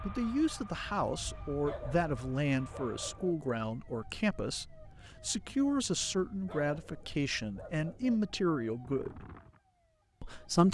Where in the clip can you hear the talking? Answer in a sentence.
You can hear the talking from 0.1 to 9.2 s and from 10.2 to 10.6 s.